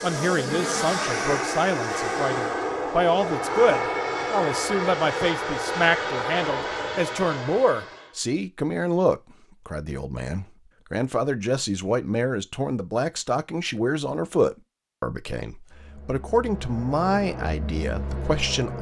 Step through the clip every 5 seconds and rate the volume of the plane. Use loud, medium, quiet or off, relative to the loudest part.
loud, loud, off, medium.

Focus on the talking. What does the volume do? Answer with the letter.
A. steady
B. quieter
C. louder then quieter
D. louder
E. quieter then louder
A.